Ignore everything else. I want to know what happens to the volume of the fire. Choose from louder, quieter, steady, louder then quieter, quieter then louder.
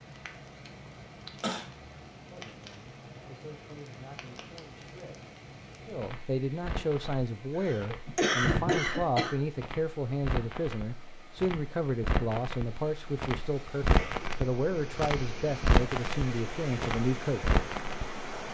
louder.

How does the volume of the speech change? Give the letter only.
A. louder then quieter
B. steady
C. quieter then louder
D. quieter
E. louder
E.